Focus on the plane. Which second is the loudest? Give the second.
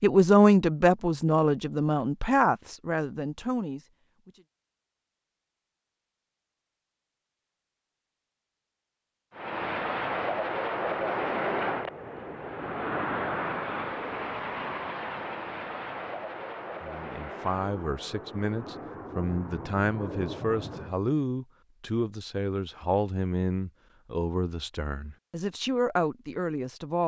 11 s.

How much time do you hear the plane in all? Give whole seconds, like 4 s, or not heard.
12 s.